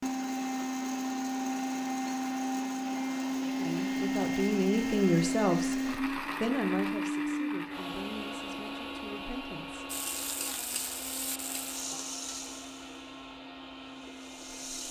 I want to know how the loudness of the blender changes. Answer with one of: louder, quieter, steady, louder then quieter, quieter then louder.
quieter.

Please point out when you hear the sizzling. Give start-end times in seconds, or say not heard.
9.8-14.8.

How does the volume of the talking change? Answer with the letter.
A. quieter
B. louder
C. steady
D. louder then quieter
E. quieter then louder
A.